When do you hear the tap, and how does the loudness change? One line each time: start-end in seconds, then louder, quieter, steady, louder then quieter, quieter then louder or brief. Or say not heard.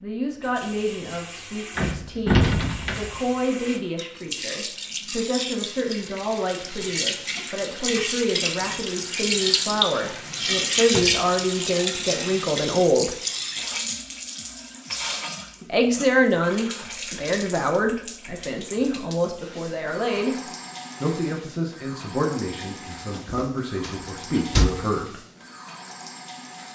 0.2-26.7 louder then quieter.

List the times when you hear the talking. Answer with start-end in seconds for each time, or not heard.
0.0-13.2, 15.7-20.4, 21.0-25.2.